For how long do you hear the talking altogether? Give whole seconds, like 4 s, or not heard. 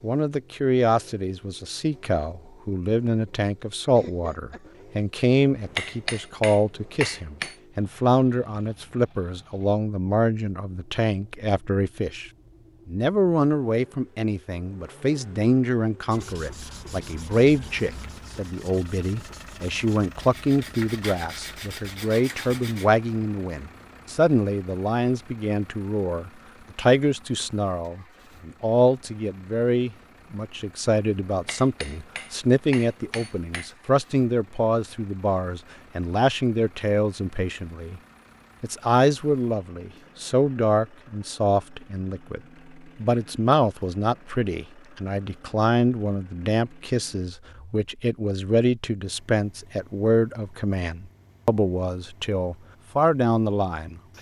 52 s.